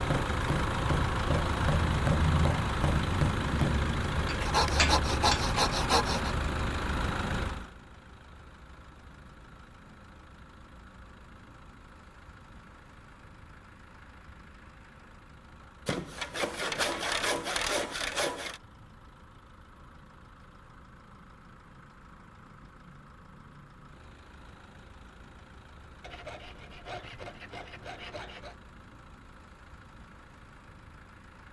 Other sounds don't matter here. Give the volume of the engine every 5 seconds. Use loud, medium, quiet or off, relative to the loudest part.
loud, medium, quiet, quiet, quiet, quiet, quiet.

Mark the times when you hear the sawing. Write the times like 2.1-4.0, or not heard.
4.4-6.3, 15.8-18.6, 26.0-28.6.